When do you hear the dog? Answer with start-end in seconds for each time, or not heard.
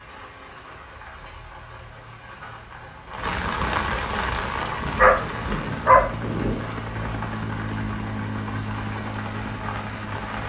4.8-6.6.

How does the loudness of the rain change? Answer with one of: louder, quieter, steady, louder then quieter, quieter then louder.
louder then quieter.